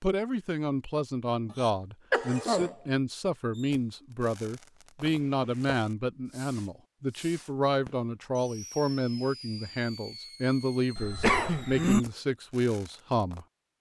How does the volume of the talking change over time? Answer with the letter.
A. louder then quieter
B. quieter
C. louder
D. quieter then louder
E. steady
E.